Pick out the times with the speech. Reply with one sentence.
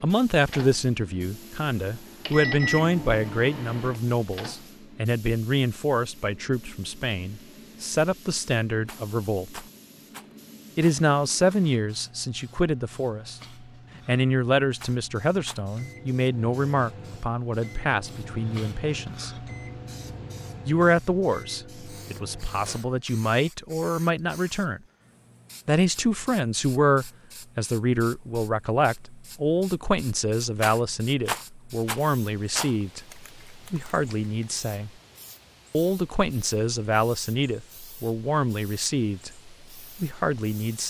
The speech can be heard from 0.0 to 9.7 s, from 10.8 to 13.4 s, from 14.1 to 19.3 s, from 20.6 to 24.8 s, from 25.6 to 34.9 s and from 35.7 to 40.8 s.